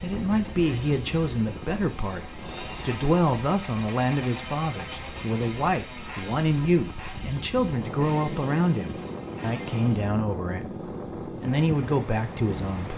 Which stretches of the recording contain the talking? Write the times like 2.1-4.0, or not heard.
0.0-10.7, 11.4-12.9.